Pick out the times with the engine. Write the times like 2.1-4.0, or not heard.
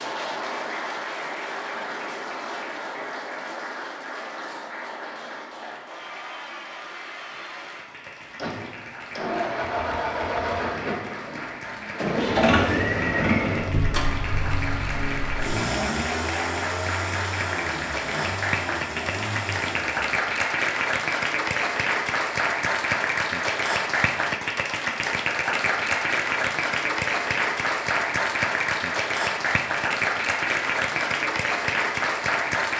8.3-20.1.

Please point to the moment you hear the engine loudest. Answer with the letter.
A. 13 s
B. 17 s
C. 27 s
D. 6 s
A.